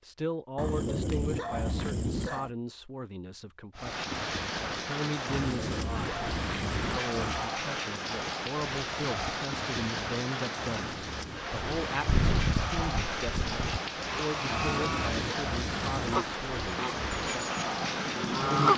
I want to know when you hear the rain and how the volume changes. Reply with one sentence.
The rain can be heard from 3.8 to 18.7 s, at a steady volume.